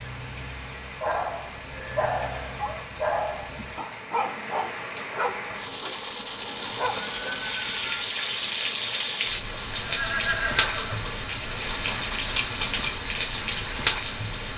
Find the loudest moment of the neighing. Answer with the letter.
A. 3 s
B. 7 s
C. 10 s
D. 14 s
C.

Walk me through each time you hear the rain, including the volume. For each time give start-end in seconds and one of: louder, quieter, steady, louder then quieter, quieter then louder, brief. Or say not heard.
0.0-14.5 louder.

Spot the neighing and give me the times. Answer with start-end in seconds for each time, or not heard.
1.7-2.9, 7.1-8.1, 9.8-11.2.